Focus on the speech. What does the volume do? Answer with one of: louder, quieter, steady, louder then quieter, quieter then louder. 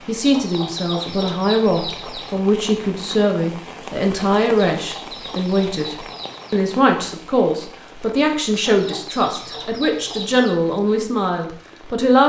steady.